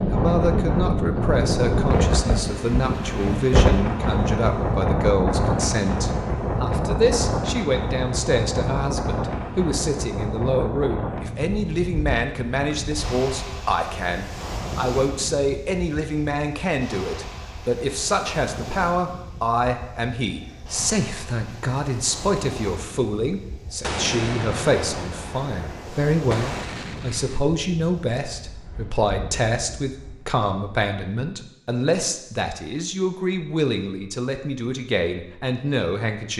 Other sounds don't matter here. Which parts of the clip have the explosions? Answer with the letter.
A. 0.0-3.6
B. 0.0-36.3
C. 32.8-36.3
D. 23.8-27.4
D.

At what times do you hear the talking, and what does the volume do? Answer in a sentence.
The talking can be heard from 0.0 to 36.3 s, at a steady volume.